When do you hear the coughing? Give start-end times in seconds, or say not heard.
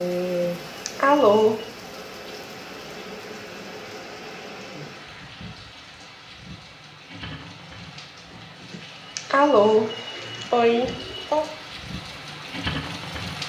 0.4-1.6, 8.7-11.5.